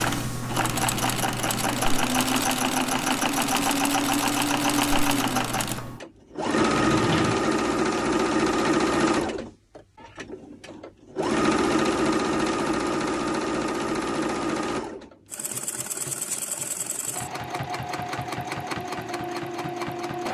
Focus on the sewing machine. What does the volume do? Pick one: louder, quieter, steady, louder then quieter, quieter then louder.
quieter.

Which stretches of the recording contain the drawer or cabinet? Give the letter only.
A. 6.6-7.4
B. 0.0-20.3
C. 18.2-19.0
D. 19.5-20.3
A.